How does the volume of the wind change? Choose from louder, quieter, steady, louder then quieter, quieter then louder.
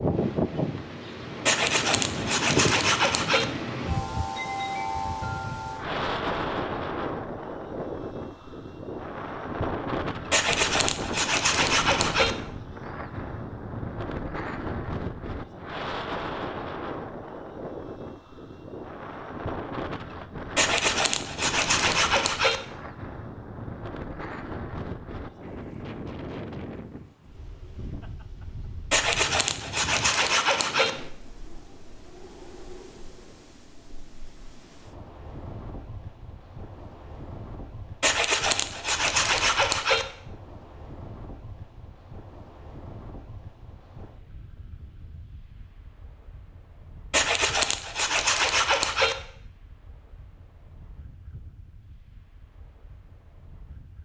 quieter.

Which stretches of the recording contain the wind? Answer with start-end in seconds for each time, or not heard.
0.0-53.9.